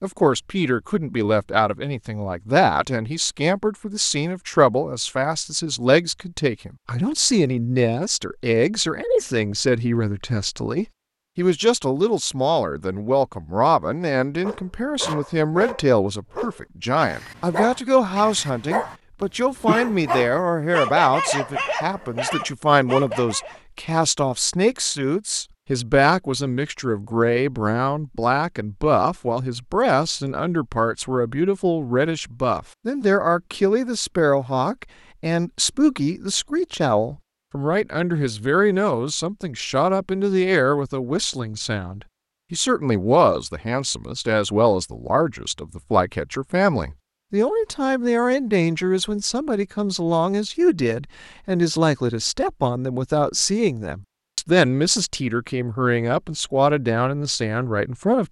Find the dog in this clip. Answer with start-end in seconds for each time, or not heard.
14.4-23.6.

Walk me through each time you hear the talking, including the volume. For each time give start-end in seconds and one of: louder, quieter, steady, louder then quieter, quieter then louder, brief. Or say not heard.
0.0-58.2 steady.